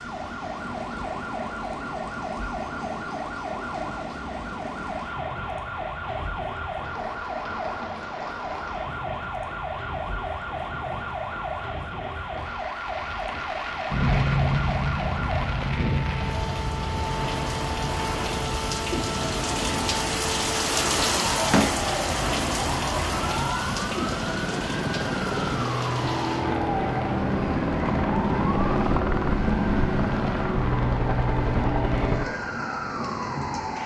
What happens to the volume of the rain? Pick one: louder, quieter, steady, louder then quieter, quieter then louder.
louder then quieter.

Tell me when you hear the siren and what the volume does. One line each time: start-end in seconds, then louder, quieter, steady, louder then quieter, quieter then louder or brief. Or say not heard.
0.0-33.8 steady.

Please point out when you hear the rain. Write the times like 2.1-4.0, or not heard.
0.0-33.8.